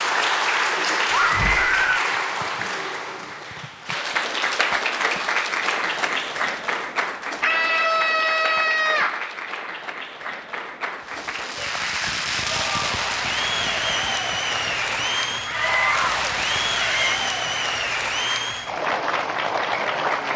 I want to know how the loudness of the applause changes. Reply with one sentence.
The loudness of the applause goes down, then up.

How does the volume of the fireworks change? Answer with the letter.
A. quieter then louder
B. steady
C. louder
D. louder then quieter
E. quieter
A.